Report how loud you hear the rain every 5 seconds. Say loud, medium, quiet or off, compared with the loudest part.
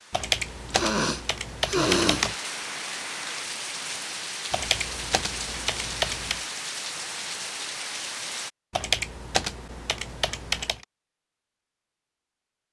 loud, loud, off.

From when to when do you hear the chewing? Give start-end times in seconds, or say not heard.
not heard.